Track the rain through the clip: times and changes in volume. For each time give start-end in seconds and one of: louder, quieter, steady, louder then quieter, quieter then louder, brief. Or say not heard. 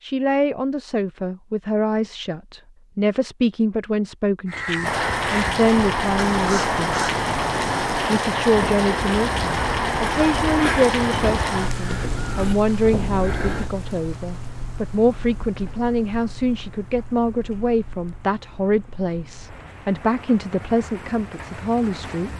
4.8-22.3 quieter.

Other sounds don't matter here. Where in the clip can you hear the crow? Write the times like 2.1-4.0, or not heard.
4.5-13.7.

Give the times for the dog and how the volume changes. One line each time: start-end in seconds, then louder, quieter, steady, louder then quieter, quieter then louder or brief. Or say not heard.
not heard.